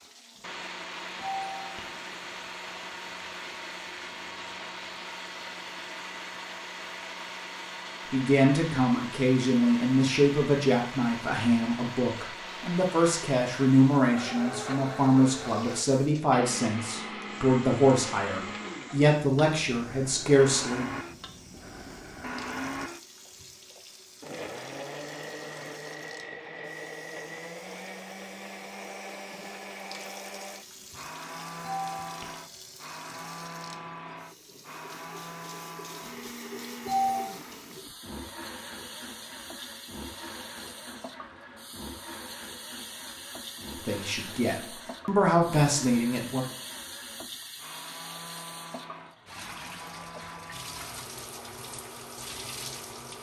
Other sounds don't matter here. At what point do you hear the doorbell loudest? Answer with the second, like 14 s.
37 s.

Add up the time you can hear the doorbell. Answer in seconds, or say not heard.
3 s.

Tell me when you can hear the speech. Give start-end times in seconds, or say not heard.
8.1-20.9, 43.9-46.5.